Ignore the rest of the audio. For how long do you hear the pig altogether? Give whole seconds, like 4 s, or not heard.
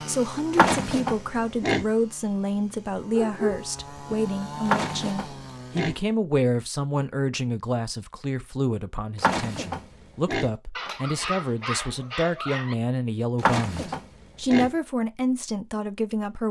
5 s.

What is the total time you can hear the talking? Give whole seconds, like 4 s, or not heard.
16 s.